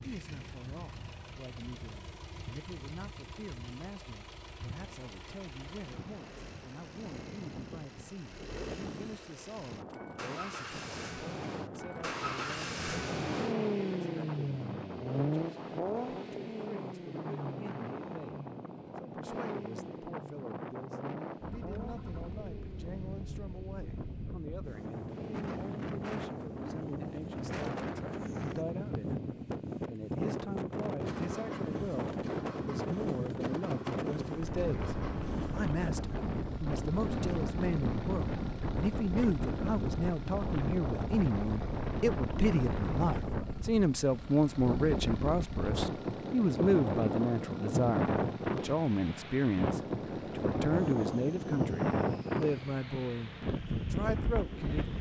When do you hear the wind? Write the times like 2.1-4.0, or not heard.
0.0-54.9.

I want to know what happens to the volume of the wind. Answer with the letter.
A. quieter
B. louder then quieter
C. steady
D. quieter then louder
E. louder
E.